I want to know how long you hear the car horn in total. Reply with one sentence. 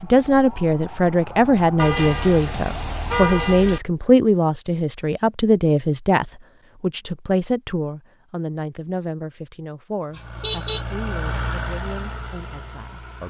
The car horn can be heard for 3 seconds in total.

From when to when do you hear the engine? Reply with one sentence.
You can hear the engine from 10.1 to 13.2 s.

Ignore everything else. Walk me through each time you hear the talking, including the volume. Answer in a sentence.
You can hear the talking from 0.0 to 13.2 s, getting quieter.